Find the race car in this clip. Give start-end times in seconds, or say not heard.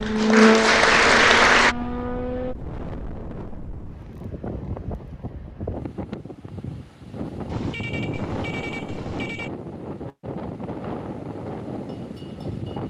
0.0-2.5.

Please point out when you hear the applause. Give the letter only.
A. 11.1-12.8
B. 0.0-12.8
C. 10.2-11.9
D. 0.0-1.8
D.